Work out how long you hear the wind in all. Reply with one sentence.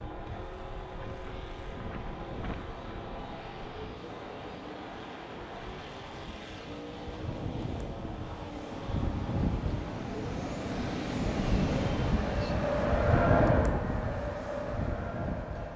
The wind can be heard for 16 seconds in total.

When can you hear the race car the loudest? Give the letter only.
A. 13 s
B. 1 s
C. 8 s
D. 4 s
A.